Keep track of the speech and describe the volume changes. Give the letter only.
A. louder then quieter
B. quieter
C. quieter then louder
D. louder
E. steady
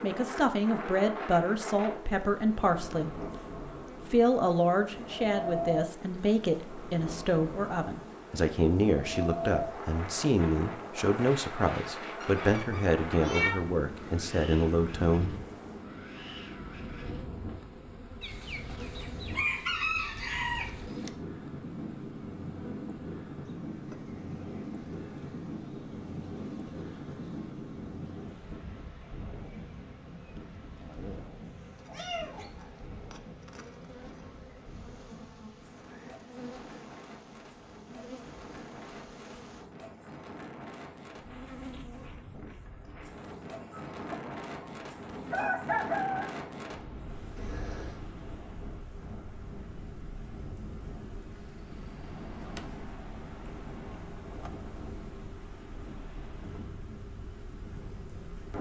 E.